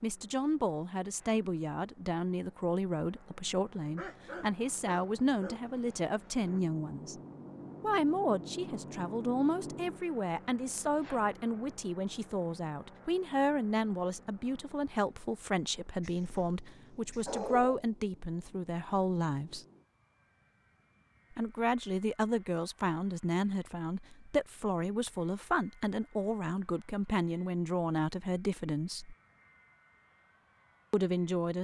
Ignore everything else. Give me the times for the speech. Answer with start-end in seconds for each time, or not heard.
0.0-7.2, 7.8-19.6, 21.3-29.1, 30.9-31.5.